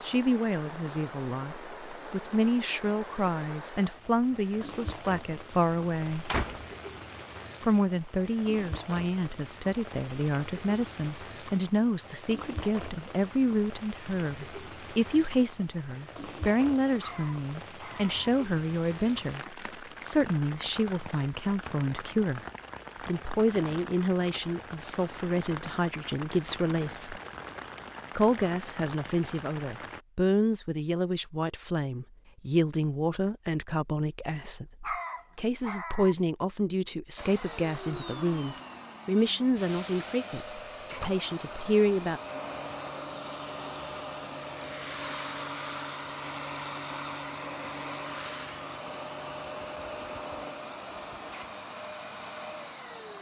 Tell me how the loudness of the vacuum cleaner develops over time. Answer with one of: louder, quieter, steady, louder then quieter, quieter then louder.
steady.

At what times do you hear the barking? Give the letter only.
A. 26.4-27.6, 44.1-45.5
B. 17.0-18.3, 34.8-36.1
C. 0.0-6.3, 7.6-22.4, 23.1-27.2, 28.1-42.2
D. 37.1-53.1
B.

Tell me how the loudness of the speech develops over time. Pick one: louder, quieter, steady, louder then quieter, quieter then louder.
steady.